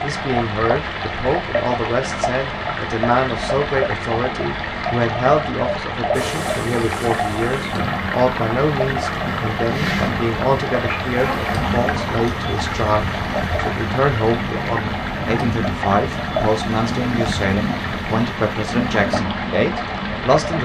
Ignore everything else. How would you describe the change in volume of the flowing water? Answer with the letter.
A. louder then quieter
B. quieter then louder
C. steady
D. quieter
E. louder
C.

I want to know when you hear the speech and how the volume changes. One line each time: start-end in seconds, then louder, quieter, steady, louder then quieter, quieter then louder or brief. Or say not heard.
0.0-20.6 steady.